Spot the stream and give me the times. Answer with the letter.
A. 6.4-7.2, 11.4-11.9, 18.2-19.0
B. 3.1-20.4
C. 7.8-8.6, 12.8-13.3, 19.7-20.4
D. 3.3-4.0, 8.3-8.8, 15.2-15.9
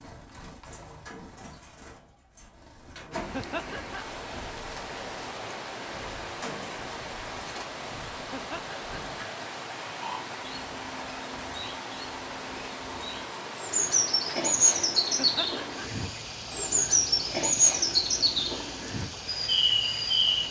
B.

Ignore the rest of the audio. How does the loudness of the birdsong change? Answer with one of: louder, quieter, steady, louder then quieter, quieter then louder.
louder.